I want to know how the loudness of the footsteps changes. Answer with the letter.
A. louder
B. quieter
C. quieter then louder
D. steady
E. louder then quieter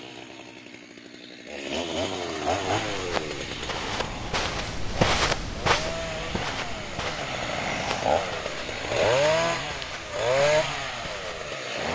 E.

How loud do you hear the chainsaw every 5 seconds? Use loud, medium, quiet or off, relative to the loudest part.
medium, loud, loud.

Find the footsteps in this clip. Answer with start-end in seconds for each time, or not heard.
2.8-11.6.